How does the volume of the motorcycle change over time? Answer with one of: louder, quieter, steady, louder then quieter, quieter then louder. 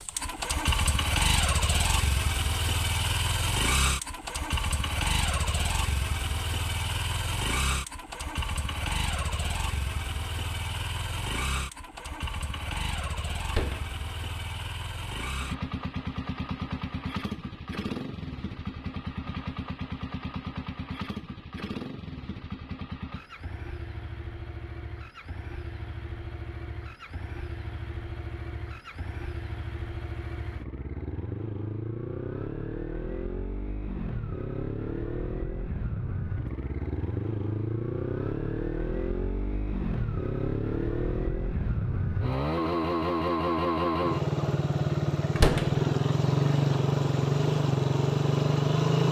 quieter then louder.